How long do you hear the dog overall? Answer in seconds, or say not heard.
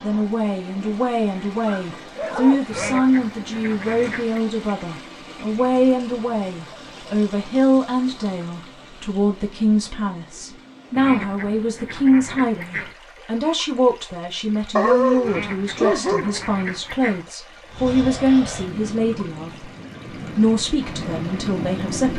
3 s.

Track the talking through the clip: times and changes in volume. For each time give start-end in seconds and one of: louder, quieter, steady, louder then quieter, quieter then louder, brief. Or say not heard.
0.0-19.7 steady
20.4-22.1 brief.